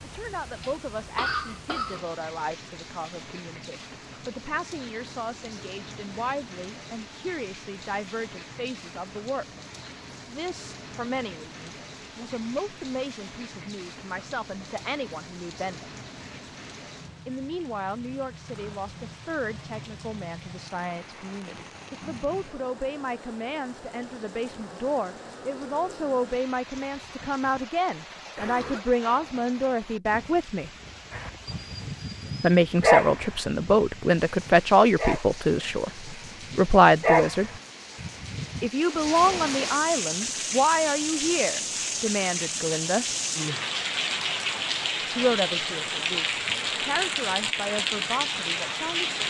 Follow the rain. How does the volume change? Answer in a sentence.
The volume of the rain goes up.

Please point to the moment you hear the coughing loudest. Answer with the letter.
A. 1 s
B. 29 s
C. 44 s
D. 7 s
A.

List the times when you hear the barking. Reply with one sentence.
The barking can be heard from 31.1 to 38.6 s.